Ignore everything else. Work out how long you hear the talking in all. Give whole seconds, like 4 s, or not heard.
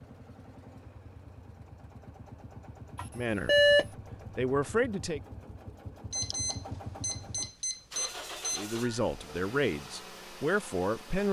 4 s.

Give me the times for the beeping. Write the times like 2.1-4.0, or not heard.
3.0-3.9, 6.1-8.6.